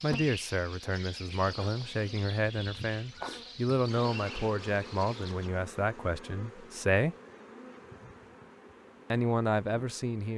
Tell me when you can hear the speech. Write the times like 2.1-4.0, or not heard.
0.0-7.2, 9.1-10.3.